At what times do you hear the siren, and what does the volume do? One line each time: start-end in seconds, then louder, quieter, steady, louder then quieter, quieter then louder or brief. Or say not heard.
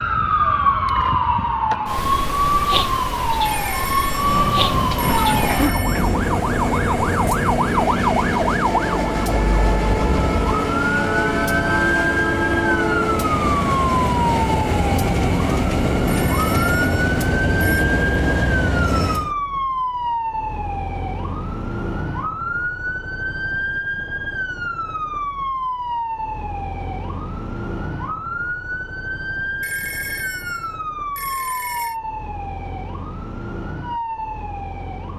0.0-35.1 quieter.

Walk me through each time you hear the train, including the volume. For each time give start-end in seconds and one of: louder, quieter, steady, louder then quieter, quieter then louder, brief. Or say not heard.
4.0-19.4 steady.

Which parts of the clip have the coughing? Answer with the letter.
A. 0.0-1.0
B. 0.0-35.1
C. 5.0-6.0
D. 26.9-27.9
C.